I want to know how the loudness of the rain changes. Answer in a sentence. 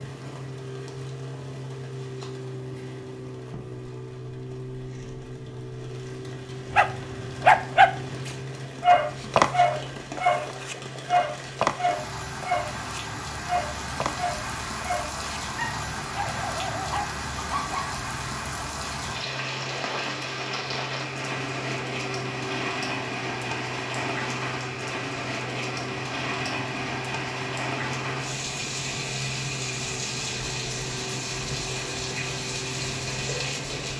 The volume of the rain goes up.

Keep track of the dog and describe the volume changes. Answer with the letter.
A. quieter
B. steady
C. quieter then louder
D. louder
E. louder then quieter
A.